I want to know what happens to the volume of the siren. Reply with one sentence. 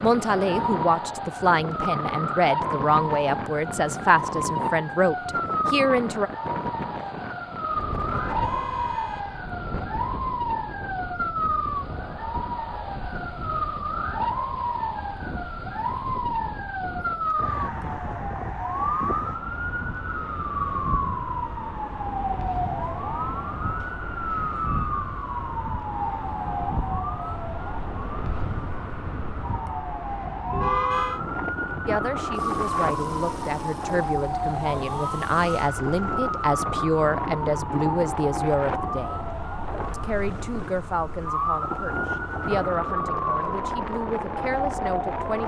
The volume of the siren stays about the same.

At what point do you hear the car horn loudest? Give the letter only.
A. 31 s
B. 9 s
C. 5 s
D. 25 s
A.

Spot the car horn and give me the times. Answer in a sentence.
You can hear the car horn from 8.0 to 9.4 s and from 30.5 to 31.2 s.